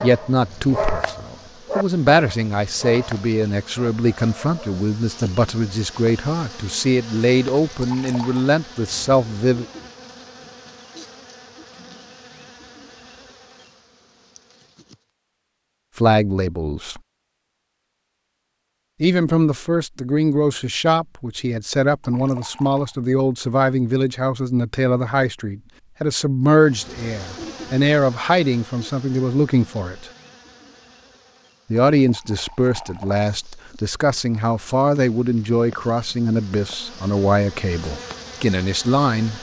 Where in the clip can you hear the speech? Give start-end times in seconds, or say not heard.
0.0-9.7, 15.9-17.0, 19.0-30.1, 31.7-39.3.